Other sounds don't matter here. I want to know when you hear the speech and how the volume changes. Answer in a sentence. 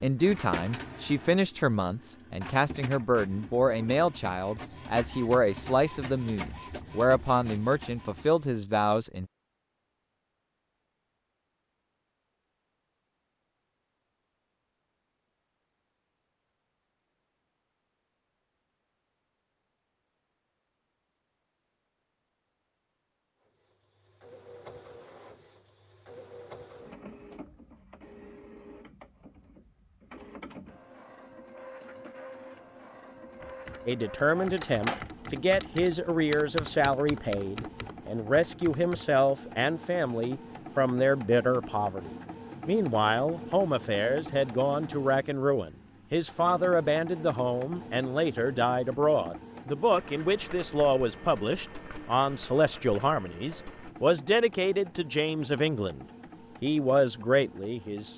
You can hear the speech from 0.0 to 9.2 s, at a steady volume; and from 33.9 to 58.1 s, at a steady volume.